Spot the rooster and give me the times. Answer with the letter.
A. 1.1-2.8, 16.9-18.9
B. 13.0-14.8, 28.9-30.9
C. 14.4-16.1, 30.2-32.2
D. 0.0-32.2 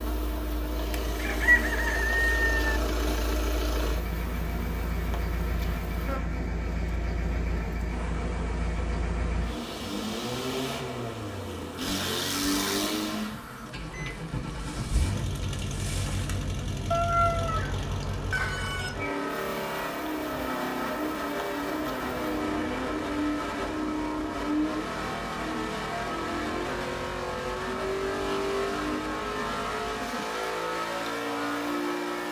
A.